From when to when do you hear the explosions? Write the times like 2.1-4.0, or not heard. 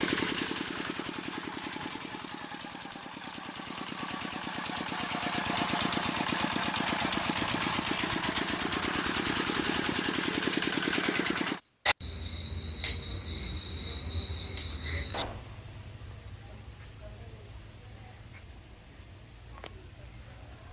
15.1-15.5.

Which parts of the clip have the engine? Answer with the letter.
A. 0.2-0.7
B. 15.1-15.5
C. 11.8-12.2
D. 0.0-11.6
D.